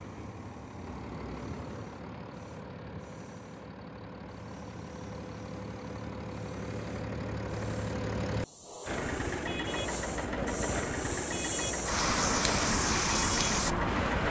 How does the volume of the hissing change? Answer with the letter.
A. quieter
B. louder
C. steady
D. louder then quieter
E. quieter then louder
B.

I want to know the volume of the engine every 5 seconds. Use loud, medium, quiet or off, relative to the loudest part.
medium, loud, loud.